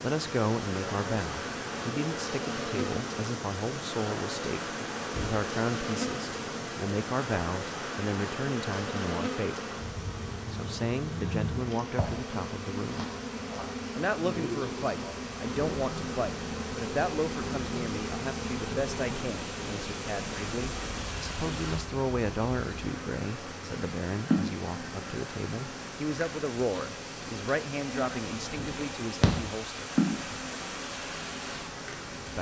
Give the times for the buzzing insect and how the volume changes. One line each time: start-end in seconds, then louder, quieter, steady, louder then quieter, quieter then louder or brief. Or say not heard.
0.0-32.3 steady.